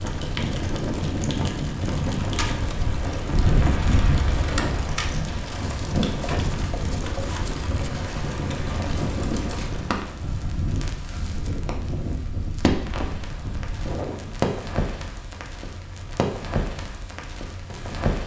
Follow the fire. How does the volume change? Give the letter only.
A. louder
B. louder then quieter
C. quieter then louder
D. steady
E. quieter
D.